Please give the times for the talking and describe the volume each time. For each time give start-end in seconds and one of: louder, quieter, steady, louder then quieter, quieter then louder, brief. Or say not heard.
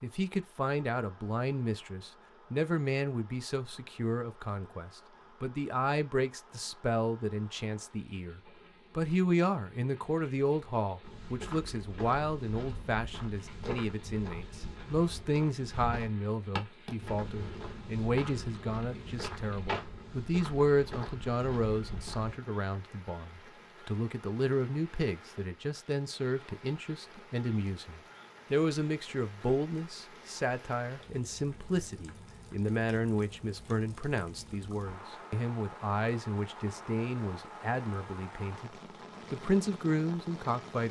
0.0-38.7 steady
39.3-40.8 brief.